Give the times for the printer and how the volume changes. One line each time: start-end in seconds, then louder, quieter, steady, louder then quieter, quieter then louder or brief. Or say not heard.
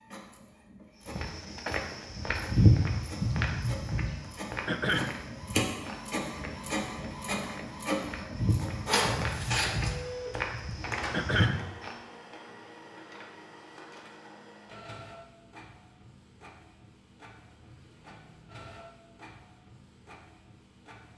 0.0-21.1 louder then quieter.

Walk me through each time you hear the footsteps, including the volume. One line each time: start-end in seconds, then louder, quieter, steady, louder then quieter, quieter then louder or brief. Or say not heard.
1.1-11.9 quieter then louder.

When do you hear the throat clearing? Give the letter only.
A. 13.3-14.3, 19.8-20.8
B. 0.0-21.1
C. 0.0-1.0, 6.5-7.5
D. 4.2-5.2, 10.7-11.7
D.